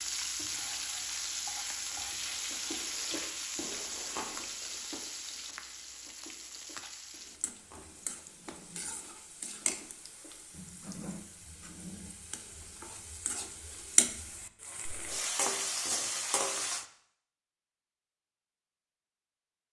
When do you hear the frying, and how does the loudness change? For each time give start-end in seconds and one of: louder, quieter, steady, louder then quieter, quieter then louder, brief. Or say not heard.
0.0-16.9 quieter then louder.